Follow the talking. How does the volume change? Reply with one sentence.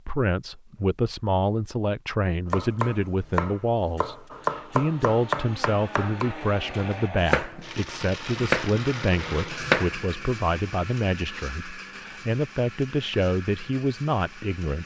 The loudness of the talking stays about the same.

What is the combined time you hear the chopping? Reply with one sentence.
The chopping can be heard for 8 seconds in total.